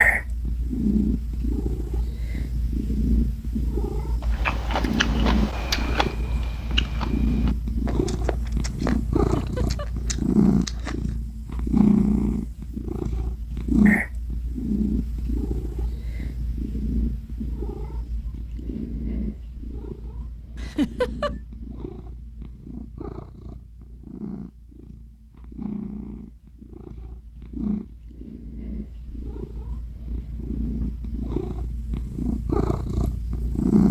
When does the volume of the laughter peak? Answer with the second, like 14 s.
21 s.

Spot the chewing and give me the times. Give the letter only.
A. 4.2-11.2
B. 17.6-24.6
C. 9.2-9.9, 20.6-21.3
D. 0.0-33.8
A.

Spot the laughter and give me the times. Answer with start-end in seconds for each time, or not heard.
9.2-9.9, 20.6-21.3.